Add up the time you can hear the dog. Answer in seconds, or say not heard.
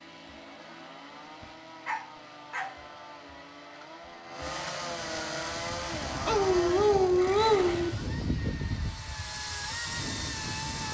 3 s.